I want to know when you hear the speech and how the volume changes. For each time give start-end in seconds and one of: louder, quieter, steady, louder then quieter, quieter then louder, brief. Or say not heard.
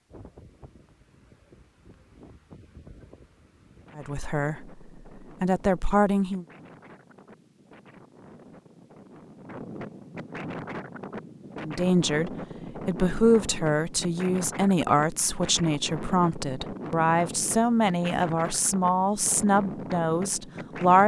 4.0-4.7 brief
5.4-6.5 brief
11.6-21.0 steady.